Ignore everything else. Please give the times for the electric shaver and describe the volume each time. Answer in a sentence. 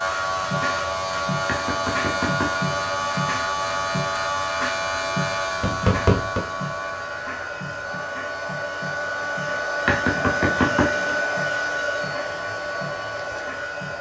The electric shaver can be heard from 0.0 to 13.9 s, getting quieter.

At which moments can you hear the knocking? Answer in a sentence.
You can hear the knocking from 1.4 to 2.8 s, from 5.6 to 6.5 s and from 9.8 to 11.2 s.